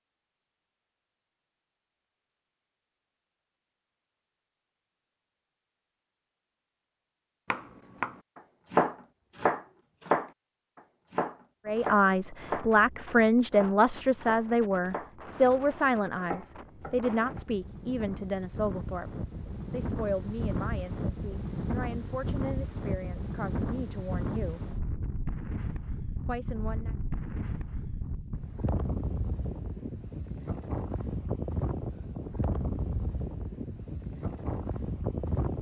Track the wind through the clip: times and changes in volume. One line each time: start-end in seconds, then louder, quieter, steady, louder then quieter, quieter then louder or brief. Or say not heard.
11.7-35.5 louder.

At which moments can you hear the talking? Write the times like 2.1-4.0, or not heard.
11.7-19.1, 19.7-24.6, 26.2-26.9.